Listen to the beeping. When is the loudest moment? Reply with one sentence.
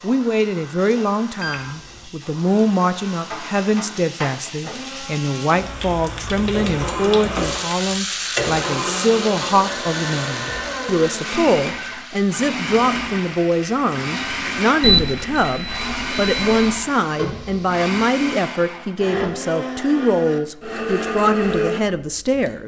The loudest moment of the beeping is at 15 seconds.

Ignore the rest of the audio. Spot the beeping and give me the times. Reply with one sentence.
You can hear the beeping from 1.4 to 2.1 s and from 14.8 to 16.8 s.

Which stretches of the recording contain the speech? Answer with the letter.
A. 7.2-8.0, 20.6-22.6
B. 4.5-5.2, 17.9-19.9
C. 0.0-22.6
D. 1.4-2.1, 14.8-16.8
C.